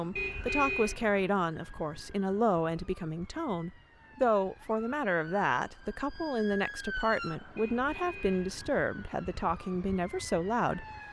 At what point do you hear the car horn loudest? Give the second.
1 s.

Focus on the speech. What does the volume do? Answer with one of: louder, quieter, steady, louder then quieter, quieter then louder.
steady.